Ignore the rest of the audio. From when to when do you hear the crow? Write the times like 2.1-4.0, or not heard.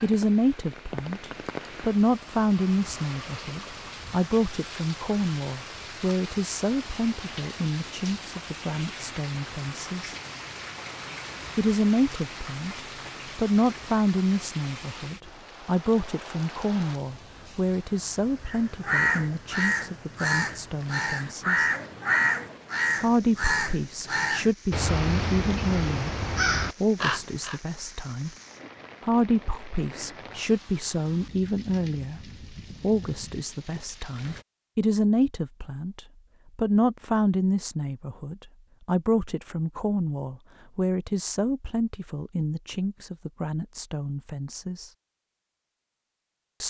18.4-27.6.